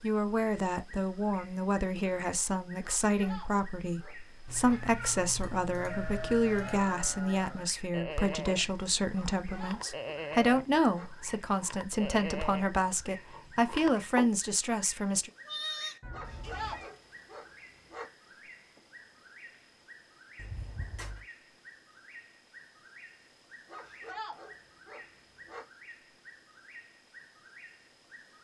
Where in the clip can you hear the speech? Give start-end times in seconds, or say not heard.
0.0-15.3.